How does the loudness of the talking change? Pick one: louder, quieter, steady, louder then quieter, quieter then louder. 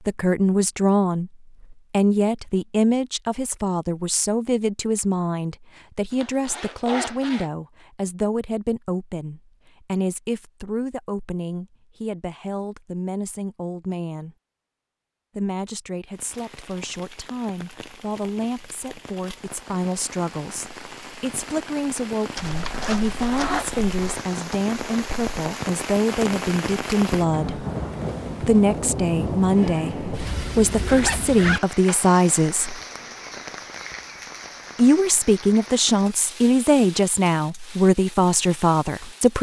quieter then louder.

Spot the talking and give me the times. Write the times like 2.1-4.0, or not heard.
0.1-14.3, 15.3-27.6, 28.4-32.8, 34.8-39.3.